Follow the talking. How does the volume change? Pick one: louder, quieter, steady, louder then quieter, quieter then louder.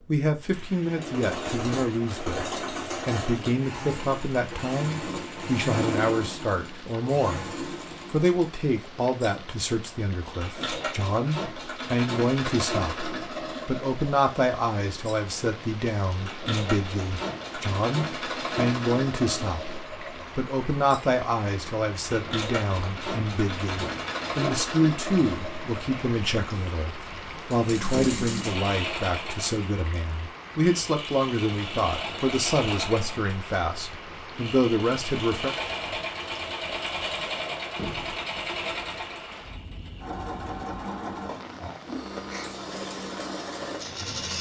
steady.